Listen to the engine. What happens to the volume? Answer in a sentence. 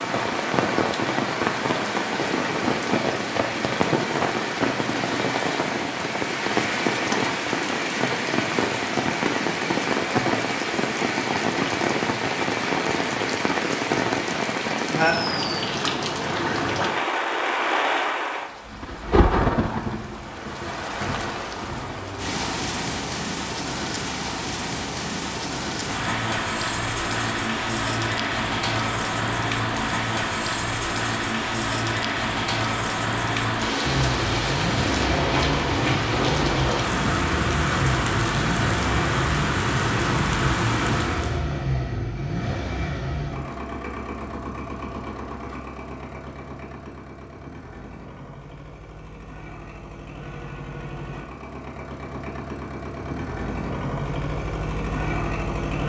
The loudness of the engine goes down, then up.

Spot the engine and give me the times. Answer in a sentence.
You can hear the engine from 33.8 to 55.8 s.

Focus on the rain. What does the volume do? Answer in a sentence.
The loudness of the rain stays about the same.